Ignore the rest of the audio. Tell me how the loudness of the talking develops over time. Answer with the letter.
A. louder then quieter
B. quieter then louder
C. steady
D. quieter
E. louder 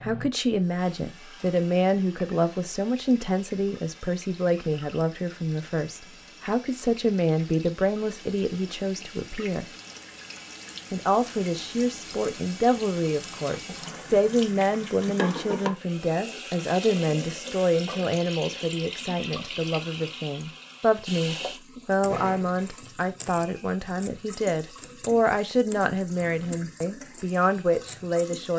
C.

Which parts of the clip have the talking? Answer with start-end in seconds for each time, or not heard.
0.0-9.7, 10.9-28.5.